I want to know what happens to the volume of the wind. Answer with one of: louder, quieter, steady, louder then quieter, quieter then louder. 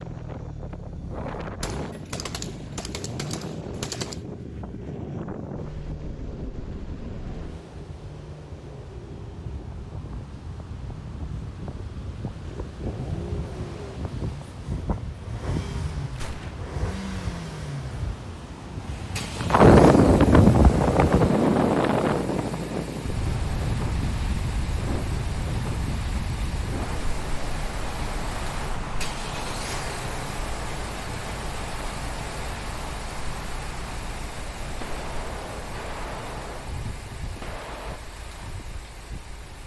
louder then quieter.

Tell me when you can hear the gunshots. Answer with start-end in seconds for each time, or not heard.
1.6-4.2, 16.1-16.8, 34.6-38.0.